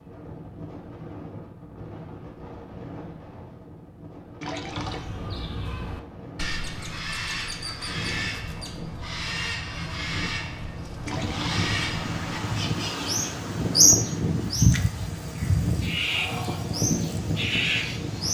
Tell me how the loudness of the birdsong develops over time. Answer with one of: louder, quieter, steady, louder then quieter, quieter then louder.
louder then quieter.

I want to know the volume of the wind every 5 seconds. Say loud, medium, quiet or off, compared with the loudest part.
medium, medium, loud, loud.